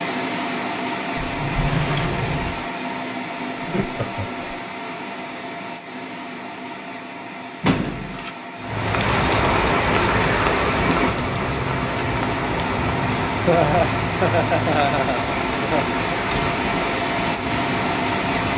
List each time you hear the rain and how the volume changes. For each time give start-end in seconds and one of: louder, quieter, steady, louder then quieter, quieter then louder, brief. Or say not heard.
8.6-18.5 quieter.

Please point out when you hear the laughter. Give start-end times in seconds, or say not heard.
3.5-4.6, 13.4-15.9.